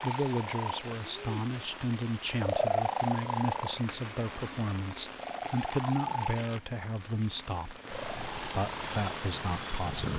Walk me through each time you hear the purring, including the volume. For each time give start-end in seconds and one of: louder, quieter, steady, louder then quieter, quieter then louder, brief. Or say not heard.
0.0-10.1 louder then quieter.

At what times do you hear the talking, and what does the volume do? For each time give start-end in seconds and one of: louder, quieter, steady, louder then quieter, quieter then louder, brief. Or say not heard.
0.0-10.1 steady.